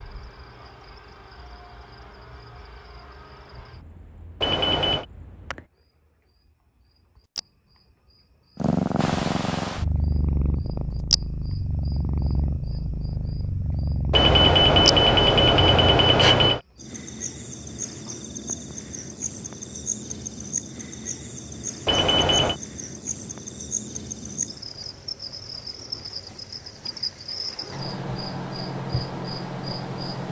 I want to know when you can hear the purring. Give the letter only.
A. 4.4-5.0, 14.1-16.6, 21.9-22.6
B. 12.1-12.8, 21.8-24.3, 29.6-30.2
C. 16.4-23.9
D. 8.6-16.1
D.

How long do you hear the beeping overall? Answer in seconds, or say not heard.
4 s.